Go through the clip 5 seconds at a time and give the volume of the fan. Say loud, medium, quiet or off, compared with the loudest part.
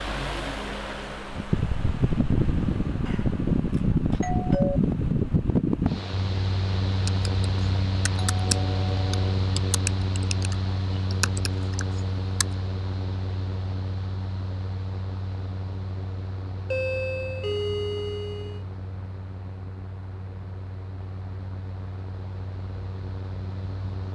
loud, loud, medium, quiet, quiet.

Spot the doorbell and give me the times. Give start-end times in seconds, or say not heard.
3.0-4.8, 8.4-9.2, 16.7-18.6.